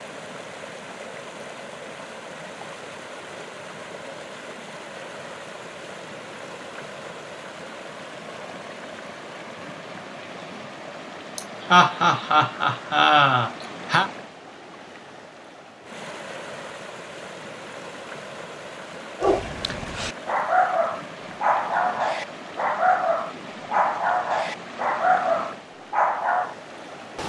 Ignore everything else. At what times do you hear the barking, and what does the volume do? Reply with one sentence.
The barking can be heard from 19.2 to 26.6 s, at a steady volume.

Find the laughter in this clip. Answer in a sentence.
The laughter can be heard from 11.3 to 14.1 s.